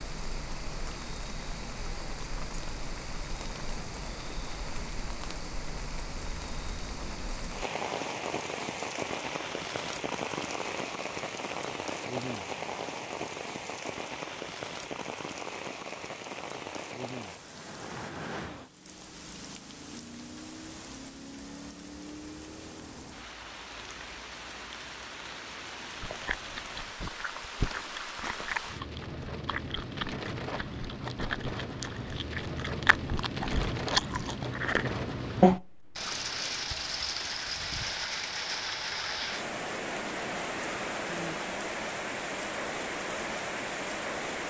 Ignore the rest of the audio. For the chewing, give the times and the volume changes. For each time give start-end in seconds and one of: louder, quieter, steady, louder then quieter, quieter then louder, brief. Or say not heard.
25.9-36.2 louder.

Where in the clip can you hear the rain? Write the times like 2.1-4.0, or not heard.
0.0-44.4.